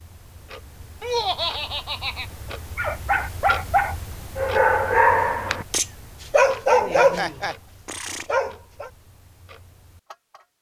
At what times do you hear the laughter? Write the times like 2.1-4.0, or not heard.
1.0-2.3, 6.9-7.5.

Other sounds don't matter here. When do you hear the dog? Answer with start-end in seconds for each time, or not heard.
2.8-8.9.